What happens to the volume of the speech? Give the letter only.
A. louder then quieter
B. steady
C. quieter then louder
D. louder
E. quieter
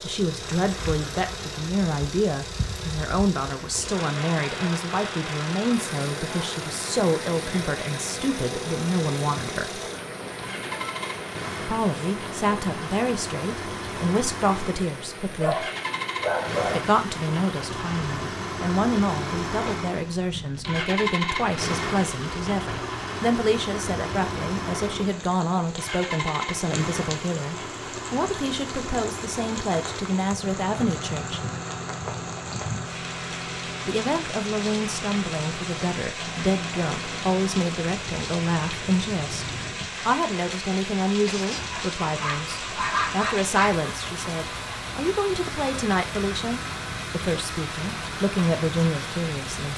B.